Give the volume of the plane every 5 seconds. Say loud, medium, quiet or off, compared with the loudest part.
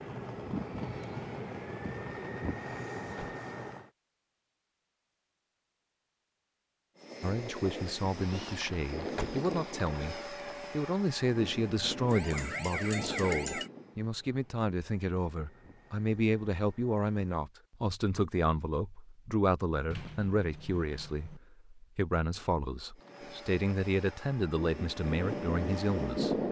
medium, medium, medium, quiet, quiet, loud.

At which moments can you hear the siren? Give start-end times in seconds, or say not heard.
12.1-13.7.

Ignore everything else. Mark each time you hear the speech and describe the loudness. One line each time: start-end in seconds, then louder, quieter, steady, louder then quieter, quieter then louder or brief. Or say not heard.
7.2-26.4 steady.